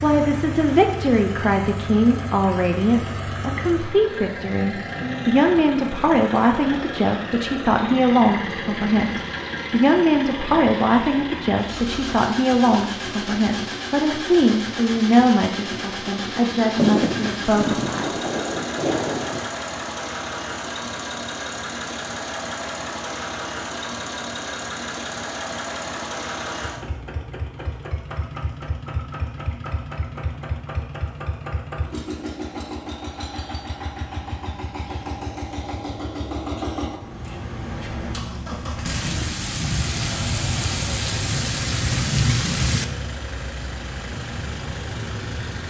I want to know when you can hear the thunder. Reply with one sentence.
The thunder can be heard from 16.8 to 19.5 s and from 38.9 to 42.9 s.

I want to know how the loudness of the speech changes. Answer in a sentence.
The loudness of the speech stays about the same.